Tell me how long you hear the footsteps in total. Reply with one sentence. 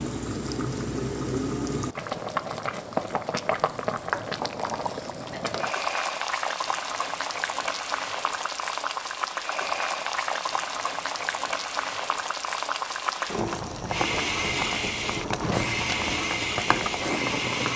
The footsteps can't be heard in this clip.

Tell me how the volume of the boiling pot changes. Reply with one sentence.
The loudness of the boiling pot stays about the same.